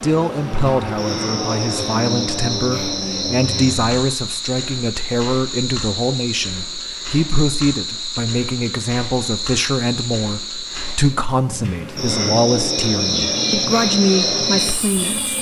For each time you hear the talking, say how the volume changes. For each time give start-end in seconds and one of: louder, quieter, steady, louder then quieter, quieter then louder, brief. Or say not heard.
0.0-15.3 steady.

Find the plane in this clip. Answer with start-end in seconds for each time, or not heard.
0.0-3.9, 12.9-15.3.